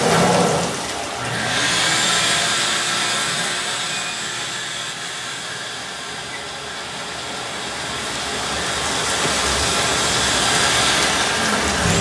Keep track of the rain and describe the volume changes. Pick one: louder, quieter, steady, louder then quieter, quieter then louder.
quieter then louder.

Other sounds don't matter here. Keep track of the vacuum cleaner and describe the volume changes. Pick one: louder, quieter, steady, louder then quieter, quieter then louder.
quieter then louder.